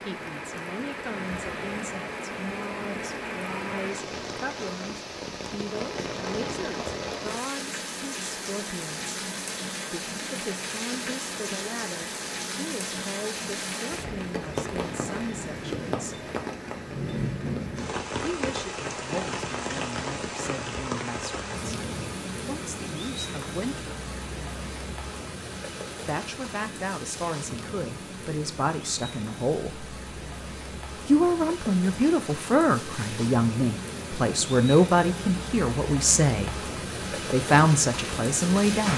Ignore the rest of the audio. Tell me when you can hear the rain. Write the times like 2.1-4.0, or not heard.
0.0-38.9.